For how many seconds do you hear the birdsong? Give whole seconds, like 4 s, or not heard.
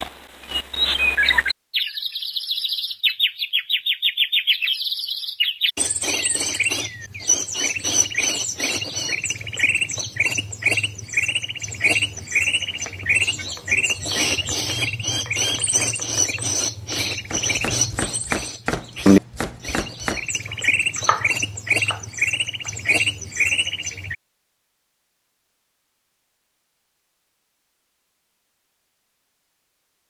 24 s.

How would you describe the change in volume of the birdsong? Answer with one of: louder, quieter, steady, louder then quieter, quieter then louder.
steady.